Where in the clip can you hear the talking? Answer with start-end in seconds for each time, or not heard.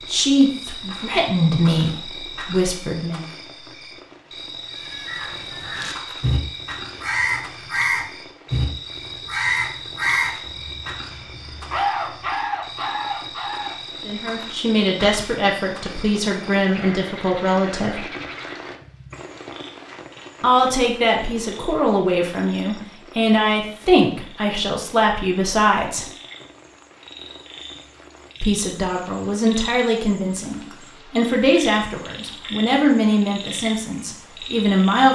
0.1-3.2, 14.1-18.1, 20.4-26.1, 28.4-35.0.